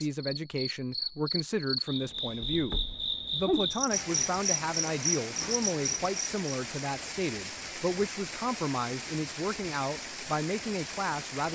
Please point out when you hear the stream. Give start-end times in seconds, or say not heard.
3.9-11.4.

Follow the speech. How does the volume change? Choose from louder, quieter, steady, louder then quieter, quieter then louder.
steady.